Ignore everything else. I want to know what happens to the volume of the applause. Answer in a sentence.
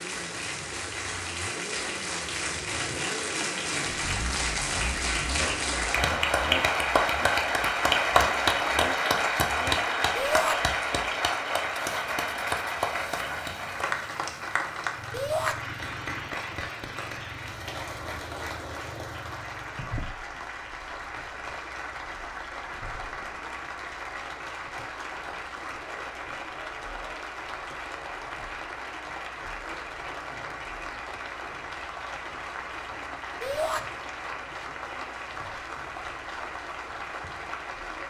The loudness of the applause goes down.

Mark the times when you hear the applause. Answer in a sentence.
You can hear the applause from 0.0 to 38.0 s.